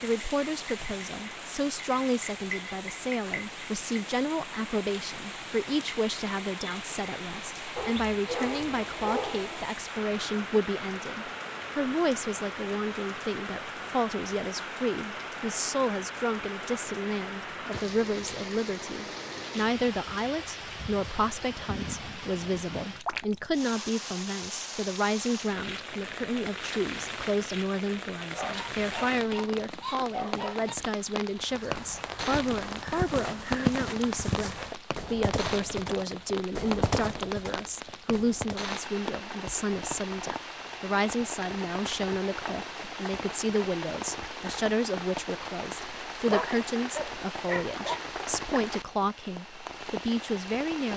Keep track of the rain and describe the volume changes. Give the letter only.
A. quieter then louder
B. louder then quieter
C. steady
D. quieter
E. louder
C.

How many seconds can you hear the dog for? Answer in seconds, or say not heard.
6 s.